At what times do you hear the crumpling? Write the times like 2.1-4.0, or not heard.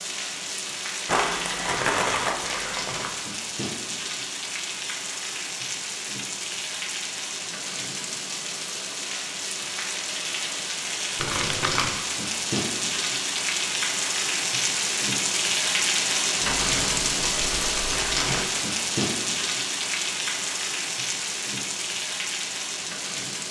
1.1-3.1, 11.2-11.9, 16.4-18.4.